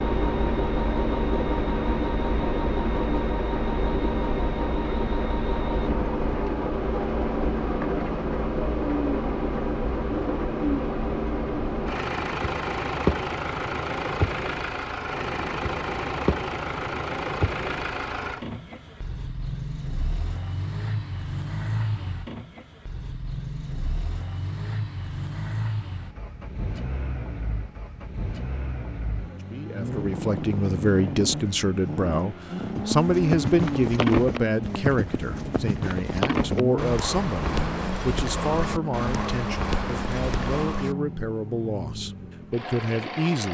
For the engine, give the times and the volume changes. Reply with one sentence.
The engine can be heard from 0.0 to 43.4 s, getting quieter.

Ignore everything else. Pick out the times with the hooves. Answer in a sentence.
The hooves can be heard from 32.6 to 41.0 s.